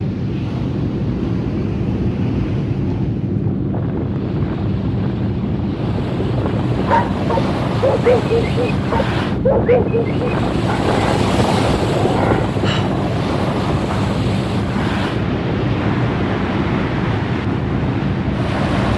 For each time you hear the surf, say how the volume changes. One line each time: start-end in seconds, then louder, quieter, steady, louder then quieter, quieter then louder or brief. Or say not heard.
0.0-18.9 louder.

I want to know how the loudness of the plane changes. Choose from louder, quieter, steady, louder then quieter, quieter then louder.
steady.